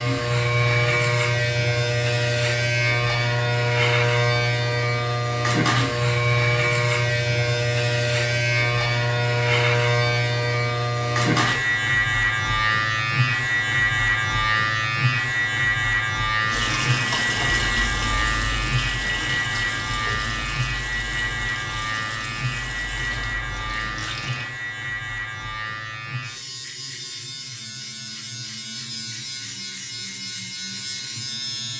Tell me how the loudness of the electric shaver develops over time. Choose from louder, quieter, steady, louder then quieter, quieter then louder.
quieter.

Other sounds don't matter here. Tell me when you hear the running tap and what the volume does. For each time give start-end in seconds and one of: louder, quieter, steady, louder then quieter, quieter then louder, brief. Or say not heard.
16.4-24.5 quieter.